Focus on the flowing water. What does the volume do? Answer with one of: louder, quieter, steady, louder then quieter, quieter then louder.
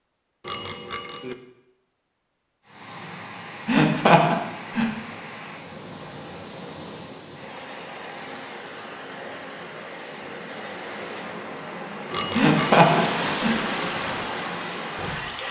louder.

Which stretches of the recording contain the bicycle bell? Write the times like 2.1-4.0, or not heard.
0.4-1.4, 12.1-13.0.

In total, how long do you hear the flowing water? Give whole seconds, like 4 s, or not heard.
13 s.